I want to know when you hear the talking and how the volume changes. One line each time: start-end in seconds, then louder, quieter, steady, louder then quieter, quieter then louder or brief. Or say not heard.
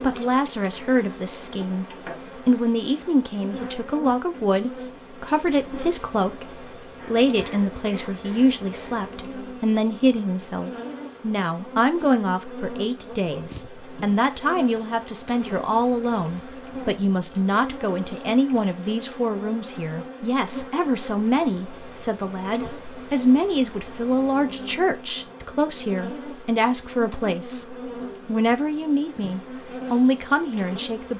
0.0-1.9 brief
2.5-31.1 steady.